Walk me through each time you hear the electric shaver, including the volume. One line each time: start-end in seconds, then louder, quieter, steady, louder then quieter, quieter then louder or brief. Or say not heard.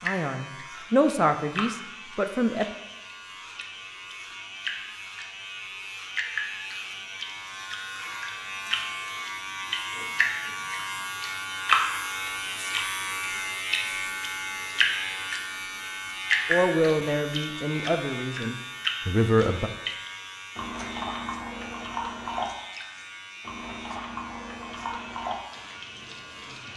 0.0-26.7 louder then quieter.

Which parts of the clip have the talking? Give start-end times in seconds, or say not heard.
0.0-2.6, 16.4-19.7.